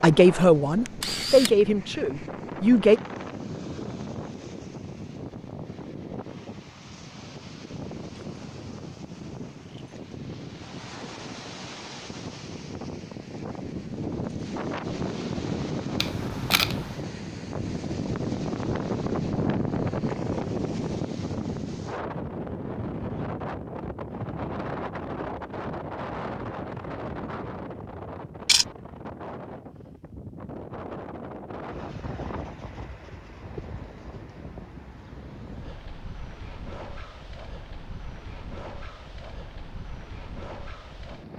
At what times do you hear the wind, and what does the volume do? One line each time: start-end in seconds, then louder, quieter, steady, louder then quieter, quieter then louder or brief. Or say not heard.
0.0-41.3 louder then quieter.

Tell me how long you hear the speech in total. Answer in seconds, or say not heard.
3 s.